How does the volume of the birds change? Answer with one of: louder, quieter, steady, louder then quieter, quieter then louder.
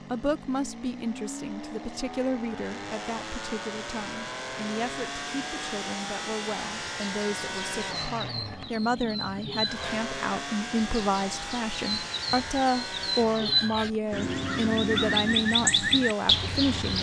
louder.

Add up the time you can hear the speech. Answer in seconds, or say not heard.
17 s.